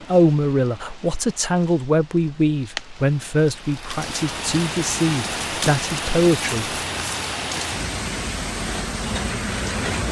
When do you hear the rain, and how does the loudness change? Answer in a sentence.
You can hear the rain from 0.0 to 10.0 s, getting louder.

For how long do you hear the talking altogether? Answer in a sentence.
The talking can be heard for 7 seconds in total.